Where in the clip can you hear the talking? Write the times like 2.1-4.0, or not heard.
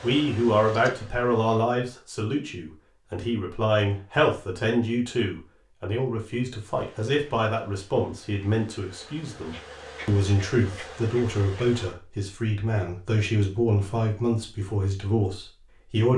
0.0-16.1.